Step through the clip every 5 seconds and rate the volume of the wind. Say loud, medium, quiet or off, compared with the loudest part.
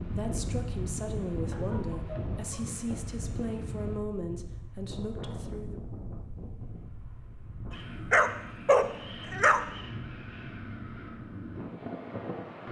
loud, medium, loud.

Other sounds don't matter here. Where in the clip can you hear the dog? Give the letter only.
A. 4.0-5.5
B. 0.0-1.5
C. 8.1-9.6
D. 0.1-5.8
C.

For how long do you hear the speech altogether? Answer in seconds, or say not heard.
6 s.